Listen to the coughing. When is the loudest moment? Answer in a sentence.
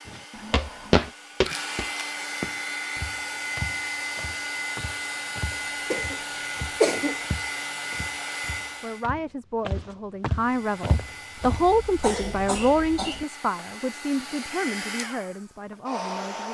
The volume of the coughing peaks at 7 seconds.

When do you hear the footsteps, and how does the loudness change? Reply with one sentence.
You can hear the footsteps from 0.1 to 11.8 s, getting quieter then louder.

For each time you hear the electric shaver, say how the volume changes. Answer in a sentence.
The electric shaver can't be heard in this clip.